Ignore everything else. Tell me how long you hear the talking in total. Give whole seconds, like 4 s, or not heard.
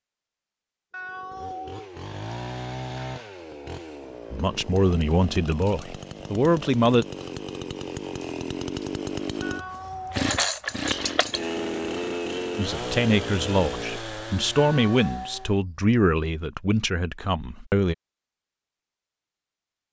8 s.